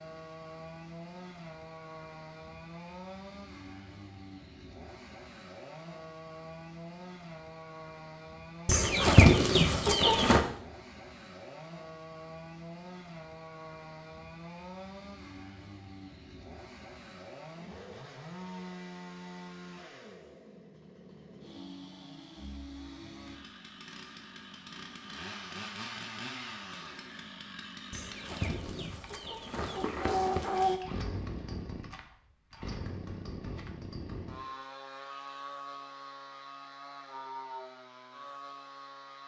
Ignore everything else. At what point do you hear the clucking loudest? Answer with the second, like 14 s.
9 s.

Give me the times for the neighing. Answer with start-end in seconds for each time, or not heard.
not heard.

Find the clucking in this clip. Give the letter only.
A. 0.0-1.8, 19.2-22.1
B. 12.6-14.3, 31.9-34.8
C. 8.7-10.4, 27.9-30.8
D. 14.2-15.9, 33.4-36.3
C.